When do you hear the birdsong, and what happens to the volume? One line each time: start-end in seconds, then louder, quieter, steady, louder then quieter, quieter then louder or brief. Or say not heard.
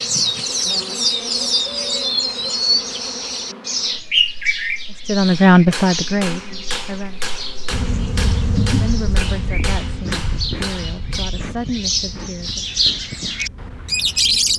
0.0-14.5 quieter then louder.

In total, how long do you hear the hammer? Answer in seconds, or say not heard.
6 s.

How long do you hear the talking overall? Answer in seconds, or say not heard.
6 s.